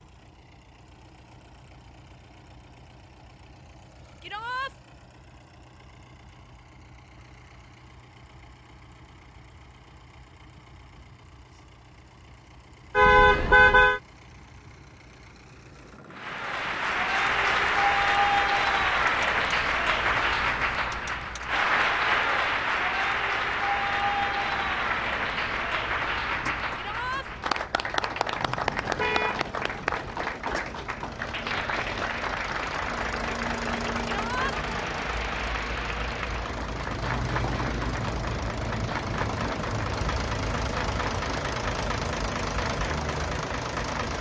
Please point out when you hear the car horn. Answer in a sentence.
The car horn can be heard from 12.9 to 14.0 s and from 28.9 to 29.4 s.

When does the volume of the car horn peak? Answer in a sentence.
The loudest moment of the car horn is at 14 seconds.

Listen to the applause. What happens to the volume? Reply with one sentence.
The volume of the applause goes down.